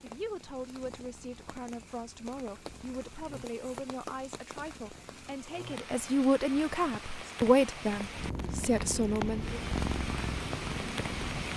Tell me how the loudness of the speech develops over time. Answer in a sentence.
The volume of the speech goes up.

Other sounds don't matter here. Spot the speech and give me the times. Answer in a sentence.
The speech can be heard from 0.0 to 9.6 s.